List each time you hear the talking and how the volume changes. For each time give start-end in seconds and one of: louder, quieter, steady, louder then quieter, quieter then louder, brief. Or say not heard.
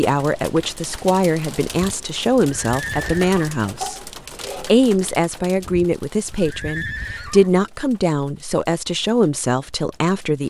0.0-10.4 steady.